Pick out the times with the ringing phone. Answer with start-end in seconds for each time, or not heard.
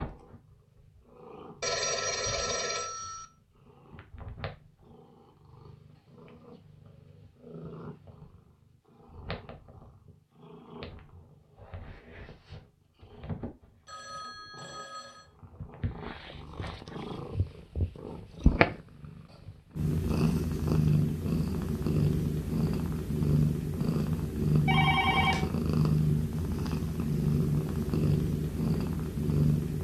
1.6-3.2, 13.8-15.3, 24.6-25.4.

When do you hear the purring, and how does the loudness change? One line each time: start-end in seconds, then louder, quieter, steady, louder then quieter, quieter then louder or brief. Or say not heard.
0.0-29.7 louder.